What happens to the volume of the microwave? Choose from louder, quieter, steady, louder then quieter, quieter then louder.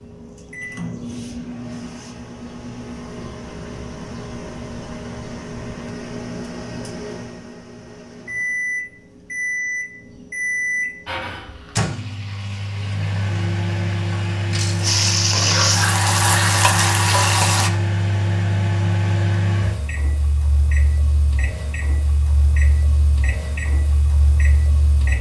louder then quieter.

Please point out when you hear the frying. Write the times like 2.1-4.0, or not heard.
11.1-17.7.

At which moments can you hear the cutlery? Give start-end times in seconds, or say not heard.
not heard.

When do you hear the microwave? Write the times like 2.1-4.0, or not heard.
0.0-25.1.